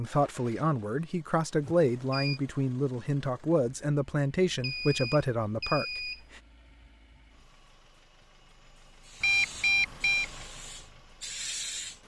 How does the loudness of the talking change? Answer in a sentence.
The volume of the talking stays about the same.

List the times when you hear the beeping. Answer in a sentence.
You can hear the beeping from 1.6 to 2.4 s, from 4.6 to 6.2 s and from 9.2 to 10.2 s.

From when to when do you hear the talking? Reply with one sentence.
The talking can be heard from 0.0 to 6.4 s.